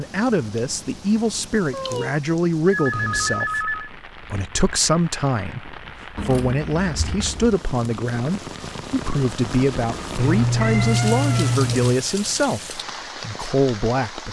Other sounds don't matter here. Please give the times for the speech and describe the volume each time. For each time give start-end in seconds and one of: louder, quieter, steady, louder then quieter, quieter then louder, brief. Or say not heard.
0.0-14.2 steady.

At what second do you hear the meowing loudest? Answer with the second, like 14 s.
11 s.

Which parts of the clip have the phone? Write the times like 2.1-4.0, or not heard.
2.7-3.9.